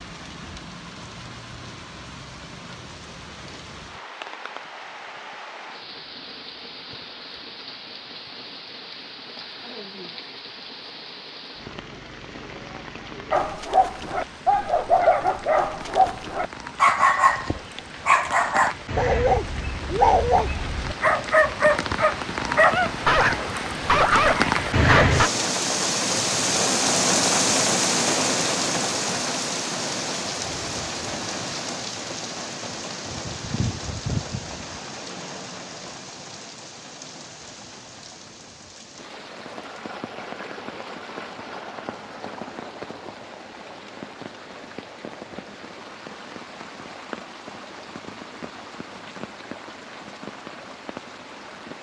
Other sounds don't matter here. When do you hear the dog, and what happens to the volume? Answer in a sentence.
You can hear the dog from 13.3 to 25.3 s, at a steady volume.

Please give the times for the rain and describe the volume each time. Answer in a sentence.
The rain can be heard from 0.0 to 51.7 s, getting louder then quieter.